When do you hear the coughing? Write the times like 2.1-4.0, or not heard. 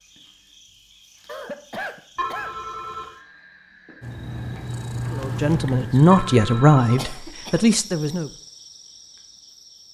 1.2-2.5, 7.0-7.7.